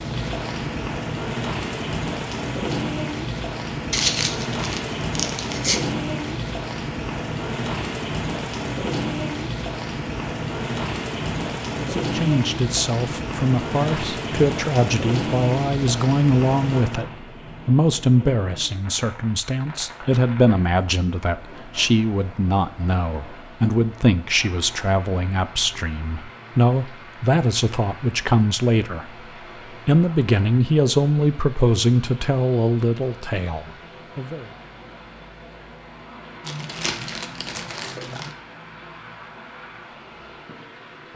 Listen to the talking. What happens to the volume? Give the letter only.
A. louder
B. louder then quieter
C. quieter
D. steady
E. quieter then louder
D.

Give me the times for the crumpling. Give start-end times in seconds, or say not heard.
3.9-5.8, 36.5-38.4.